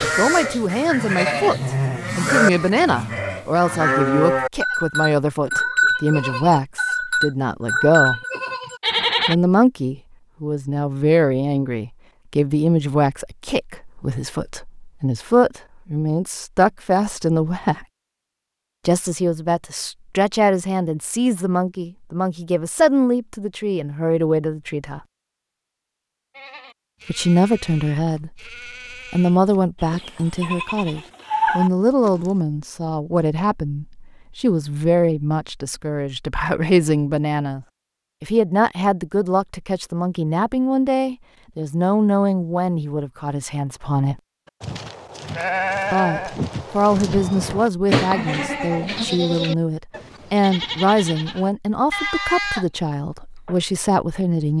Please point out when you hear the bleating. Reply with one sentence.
The bleating can be heard from 0.0 to 9.3 s, from 26.4 to 32.4 s and from 44.6 to 52.6 s.